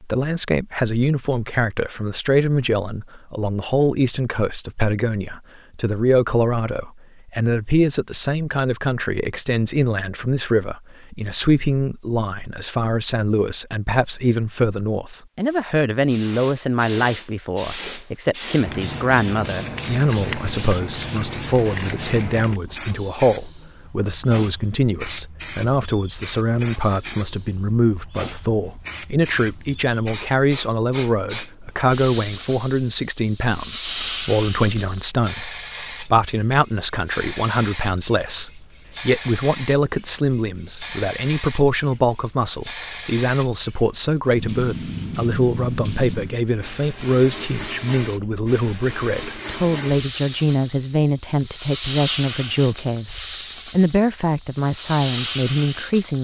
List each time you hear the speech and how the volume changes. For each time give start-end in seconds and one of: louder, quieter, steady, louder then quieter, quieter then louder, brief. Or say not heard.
0.0-56.1 steady.